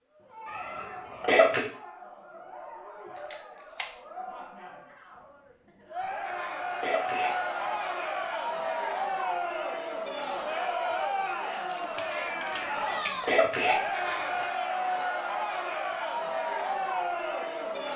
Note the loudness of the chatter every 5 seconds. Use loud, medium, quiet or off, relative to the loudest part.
quiet, loud, loud, loud.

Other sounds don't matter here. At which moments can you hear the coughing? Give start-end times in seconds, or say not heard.
0.5-1.6, 6.0-7.7, 12.4-14.4.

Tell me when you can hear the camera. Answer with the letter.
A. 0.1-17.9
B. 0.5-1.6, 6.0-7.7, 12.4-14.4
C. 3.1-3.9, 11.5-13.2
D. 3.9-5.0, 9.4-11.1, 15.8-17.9
C.